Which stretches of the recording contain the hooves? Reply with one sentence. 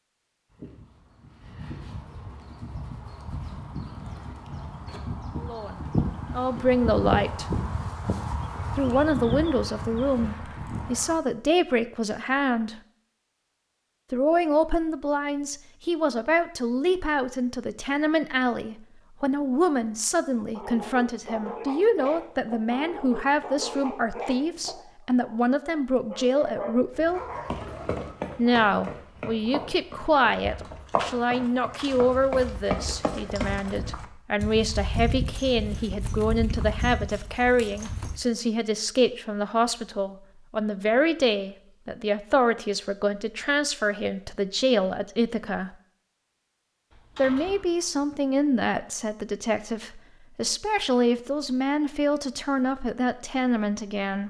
The hooves can be heard from 0.5 to 11.2 s and from 27.4 to 38.2 s.